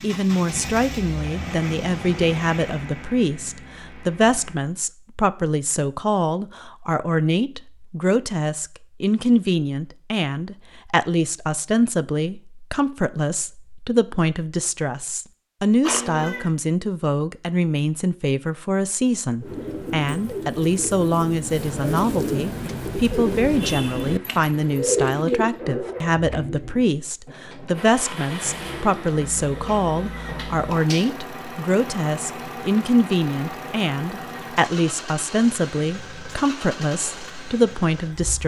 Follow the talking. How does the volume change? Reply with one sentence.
The loudness of the talking stays about the same.